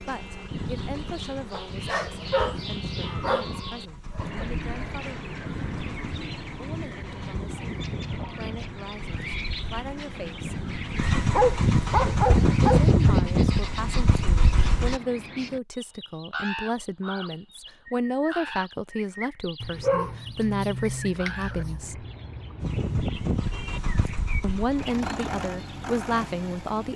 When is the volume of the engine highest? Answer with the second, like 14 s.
13 s.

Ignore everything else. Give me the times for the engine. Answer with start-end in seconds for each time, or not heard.
0.0-15.0, 22.6-26.9.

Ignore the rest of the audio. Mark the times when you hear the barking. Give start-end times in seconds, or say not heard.
1.5-4.2, 11.2-12.8, 19.6-21.9.